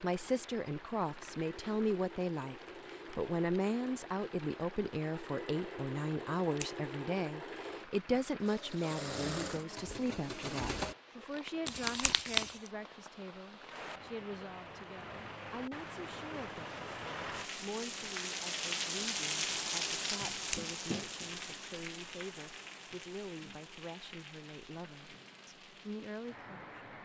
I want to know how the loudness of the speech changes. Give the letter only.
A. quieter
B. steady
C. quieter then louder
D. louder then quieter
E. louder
A.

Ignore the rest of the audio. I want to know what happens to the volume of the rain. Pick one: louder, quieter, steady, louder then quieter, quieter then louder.
louder then quieter.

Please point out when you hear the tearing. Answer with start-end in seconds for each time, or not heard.
11.7-12.7.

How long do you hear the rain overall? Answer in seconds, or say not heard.
27 s.